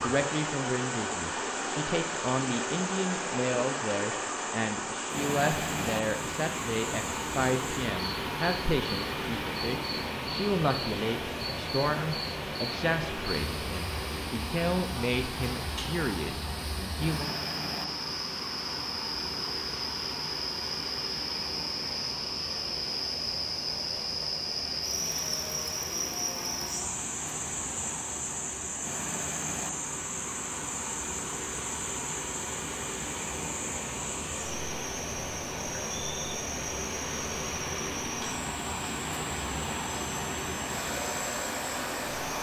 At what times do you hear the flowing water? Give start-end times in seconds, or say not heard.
0.0-42.3.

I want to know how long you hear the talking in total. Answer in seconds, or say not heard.
17 s.